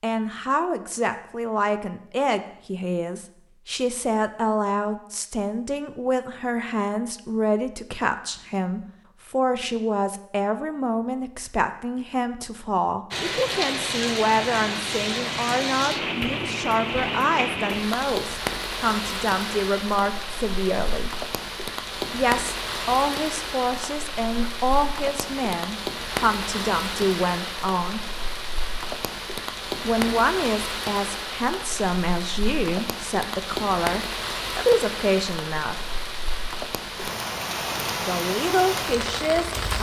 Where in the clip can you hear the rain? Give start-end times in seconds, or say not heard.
13.1-39.7.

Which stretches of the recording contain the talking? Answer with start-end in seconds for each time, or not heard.
0.0-21.1, 22.1-28.1, 29.8-35.8, 38.0-39.7.